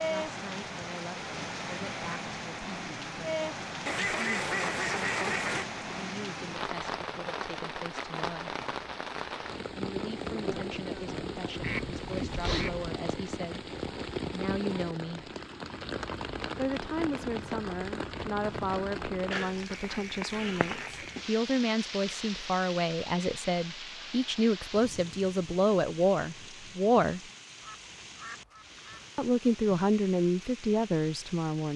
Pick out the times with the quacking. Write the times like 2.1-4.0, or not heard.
3.9-5.7, 11.6-12.9, 19.7-21.1, 27.6-29.1.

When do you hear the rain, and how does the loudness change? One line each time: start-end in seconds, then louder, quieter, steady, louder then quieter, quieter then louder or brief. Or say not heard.
0.0-31.7 quieter.